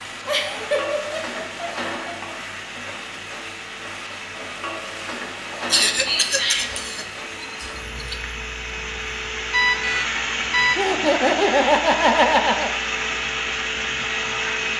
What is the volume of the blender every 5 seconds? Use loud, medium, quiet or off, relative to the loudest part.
quiet, medium, loud.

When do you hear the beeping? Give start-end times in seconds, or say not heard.
9.5-10.8.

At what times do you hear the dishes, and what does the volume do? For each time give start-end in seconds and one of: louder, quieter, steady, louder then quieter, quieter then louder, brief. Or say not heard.
not heard.